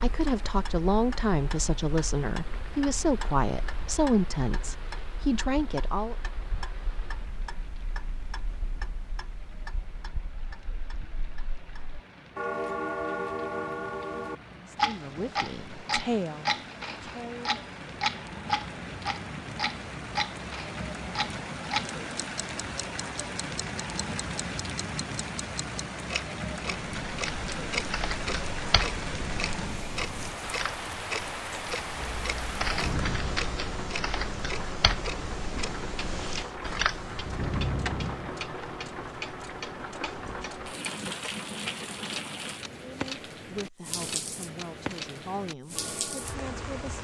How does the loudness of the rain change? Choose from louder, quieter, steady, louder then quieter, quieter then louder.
louder.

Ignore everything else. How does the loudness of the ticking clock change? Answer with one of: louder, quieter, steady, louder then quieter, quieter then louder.
louder then quieter.